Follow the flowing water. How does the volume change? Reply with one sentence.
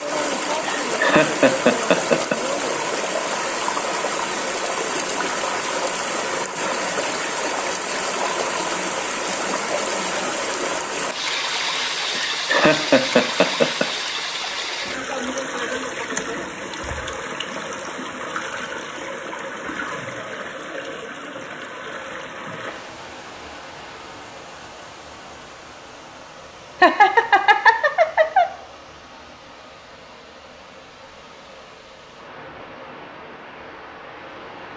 The loudness of the flowing water goes down.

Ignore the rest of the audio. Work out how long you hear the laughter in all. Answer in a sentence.
You can hear the laughter for 5 seconds altogether.